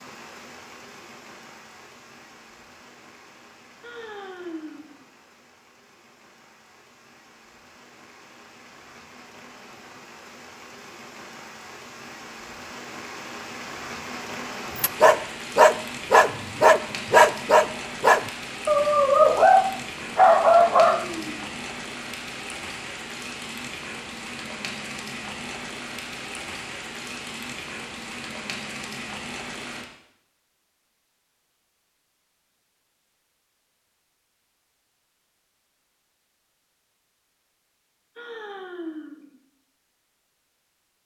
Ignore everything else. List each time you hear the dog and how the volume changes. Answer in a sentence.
You can hear the dog from 14.8 to 21.1 s, at a steady volume.